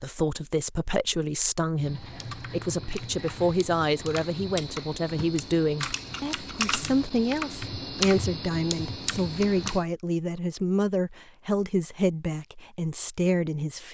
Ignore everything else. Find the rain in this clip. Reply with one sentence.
The rain can't be heard in this clip.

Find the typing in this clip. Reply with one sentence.
You can hear the typing from 1.8 to 9.8 s.